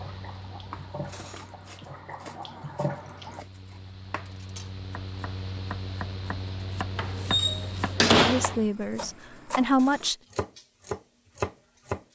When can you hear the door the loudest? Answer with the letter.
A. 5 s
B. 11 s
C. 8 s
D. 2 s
C.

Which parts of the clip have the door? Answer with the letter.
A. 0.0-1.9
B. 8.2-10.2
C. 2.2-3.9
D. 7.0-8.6
D.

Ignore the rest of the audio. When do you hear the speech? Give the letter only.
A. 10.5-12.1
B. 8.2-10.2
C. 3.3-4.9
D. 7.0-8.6
B.